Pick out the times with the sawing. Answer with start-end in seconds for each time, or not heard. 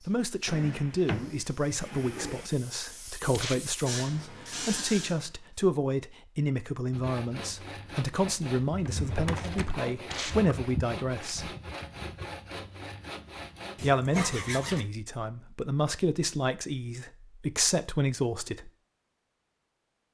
6.9-14.8.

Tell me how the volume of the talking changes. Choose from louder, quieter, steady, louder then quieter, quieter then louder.
steady.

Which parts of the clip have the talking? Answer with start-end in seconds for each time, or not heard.
0.0-11.5, 13.8-18.7.